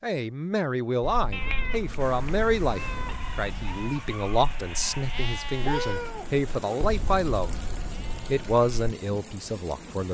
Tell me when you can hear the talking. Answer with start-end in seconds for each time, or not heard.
0.0-7.5, 8.2-10.0.